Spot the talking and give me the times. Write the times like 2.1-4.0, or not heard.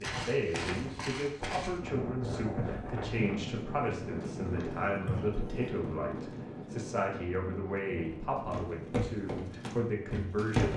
0.0-10.7.